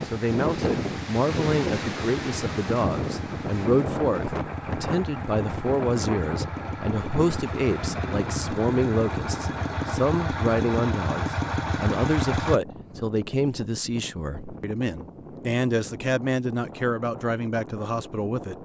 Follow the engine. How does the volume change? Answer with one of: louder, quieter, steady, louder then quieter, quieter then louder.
louder.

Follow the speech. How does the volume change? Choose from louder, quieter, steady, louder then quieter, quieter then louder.
steady.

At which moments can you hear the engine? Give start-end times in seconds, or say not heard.
0.0-12.6.